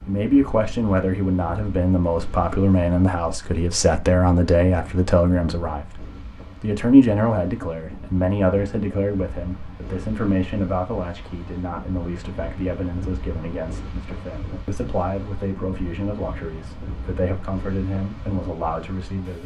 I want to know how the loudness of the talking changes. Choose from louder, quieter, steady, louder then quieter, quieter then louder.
quieter.